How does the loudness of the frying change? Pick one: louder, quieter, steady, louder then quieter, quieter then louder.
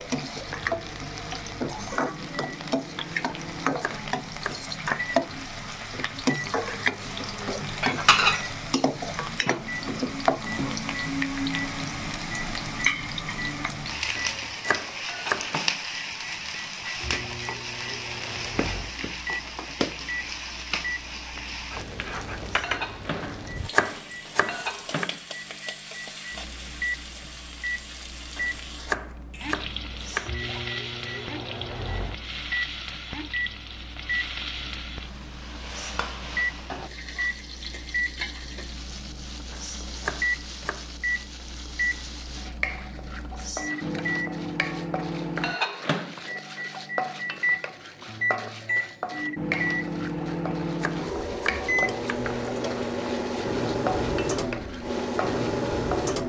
quieter.